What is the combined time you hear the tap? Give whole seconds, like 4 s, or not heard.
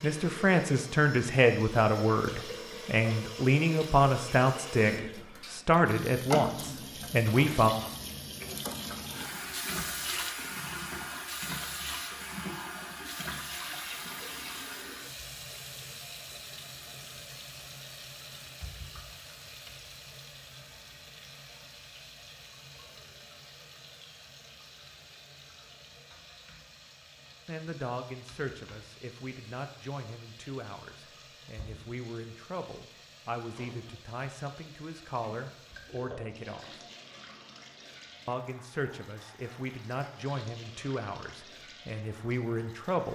43 s.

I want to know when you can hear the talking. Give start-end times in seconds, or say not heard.
0.0-7.7, 27.4-36.8, 38.2-43.1.